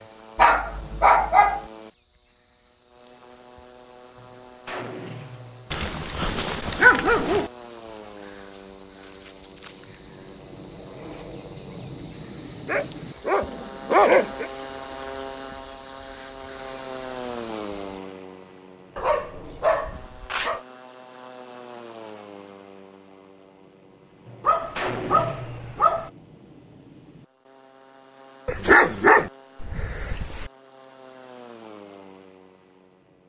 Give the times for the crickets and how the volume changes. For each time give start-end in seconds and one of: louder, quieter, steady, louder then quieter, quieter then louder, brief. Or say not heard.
0.0-18.0 louder.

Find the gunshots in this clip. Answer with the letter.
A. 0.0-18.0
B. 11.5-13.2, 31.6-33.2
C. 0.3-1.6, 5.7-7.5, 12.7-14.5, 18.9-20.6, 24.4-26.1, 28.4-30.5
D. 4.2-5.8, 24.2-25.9
D.